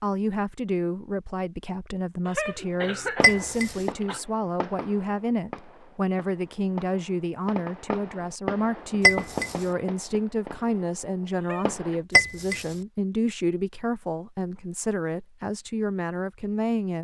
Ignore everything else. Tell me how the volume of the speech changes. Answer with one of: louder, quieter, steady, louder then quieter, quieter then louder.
steady.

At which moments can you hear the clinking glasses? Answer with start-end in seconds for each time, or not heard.
3.2-3.8, 9.0-9.6, 12.2-12.7.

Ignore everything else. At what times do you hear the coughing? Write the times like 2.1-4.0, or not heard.
2.2-4.2, 11.3-11.8.